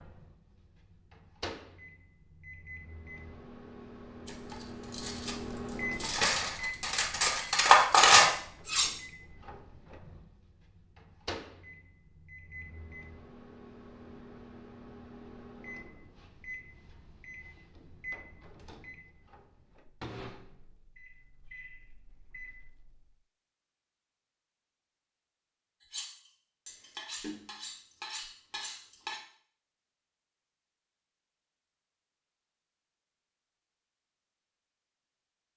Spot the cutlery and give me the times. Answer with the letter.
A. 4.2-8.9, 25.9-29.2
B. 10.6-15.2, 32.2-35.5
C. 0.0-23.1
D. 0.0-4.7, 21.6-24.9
A.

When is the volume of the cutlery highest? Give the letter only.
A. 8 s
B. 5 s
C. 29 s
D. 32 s
A.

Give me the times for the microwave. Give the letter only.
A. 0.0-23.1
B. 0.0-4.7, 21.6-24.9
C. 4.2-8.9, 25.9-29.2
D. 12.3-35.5
A.